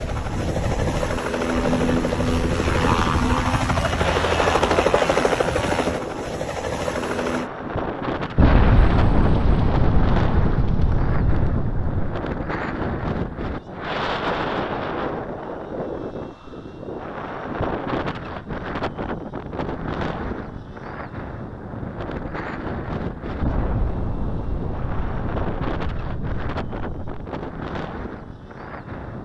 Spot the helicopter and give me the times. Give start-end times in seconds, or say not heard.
0.0-7.5.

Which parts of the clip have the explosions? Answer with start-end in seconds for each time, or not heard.
8.3-12.0, 23.4-27.2.